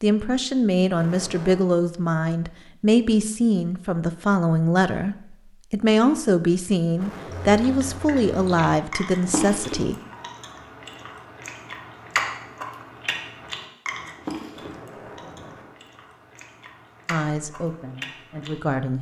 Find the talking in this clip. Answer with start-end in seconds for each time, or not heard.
0.0-9.9, 17.1-18.9.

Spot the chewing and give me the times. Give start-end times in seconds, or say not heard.
7.5-18.8.